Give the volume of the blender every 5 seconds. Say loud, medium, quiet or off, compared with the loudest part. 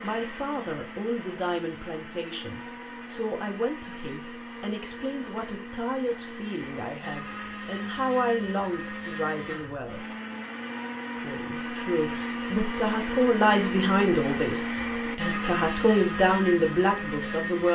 medium, medium, loud, loud.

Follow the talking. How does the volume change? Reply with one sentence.
The volume of the talking goes up.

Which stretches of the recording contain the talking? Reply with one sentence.
The talking can be heard from 0.0 to 10.1 s and from 11.2 to 17.7 s.